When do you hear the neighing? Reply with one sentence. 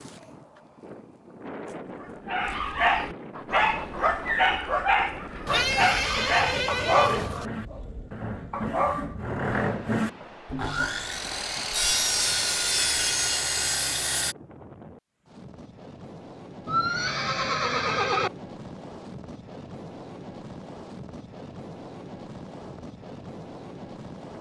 The neighing can be heard from 5.5 to 7.5 s and from 16.6 to 18.3 s.